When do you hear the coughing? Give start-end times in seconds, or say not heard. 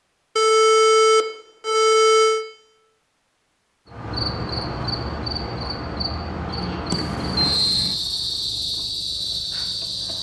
not heard.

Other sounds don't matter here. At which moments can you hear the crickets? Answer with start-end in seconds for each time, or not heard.
3.9-10.1.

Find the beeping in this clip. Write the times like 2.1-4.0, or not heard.
0.3-2.5, 6.9-8.0.